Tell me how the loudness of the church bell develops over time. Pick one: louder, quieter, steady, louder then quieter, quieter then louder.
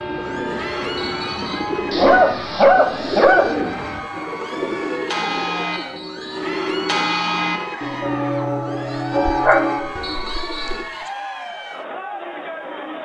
louder.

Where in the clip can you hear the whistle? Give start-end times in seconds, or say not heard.
0.9-1.7, 5.7-6.5, 10.0-10.8.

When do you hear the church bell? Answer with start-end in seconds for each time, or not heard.
0.0-10.2.